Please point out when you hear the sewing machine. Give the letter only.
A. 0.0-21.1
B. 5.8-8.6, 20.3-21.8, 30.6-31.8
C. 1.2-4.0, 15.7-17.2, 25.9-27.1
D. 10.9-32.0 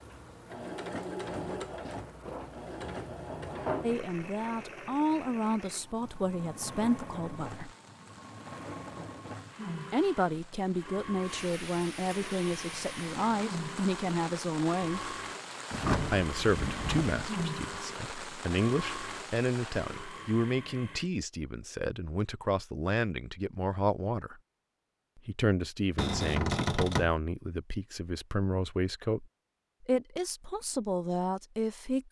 A.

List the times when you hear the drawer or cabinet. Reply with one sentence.
You can hear the drawer or cabinet from 1.2 to 4.0 s, from 15.7 to 17.2 s and from 25.9 to 27.1 s.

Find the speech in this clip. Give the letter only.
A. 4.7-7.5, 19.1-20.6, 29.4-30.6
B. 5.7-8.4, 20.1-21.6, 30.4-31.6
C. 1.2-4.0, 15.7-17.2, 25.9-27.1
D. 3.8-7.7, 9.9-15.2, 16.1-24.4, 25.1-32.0
D.